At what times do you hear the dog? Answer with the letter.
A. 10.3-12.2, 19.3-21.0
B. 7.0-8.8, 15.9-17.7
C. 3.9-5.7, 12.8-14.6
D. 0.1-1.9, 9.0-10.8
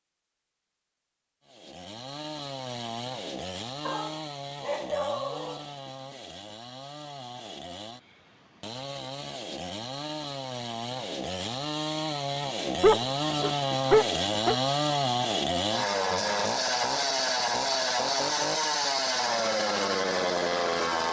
C.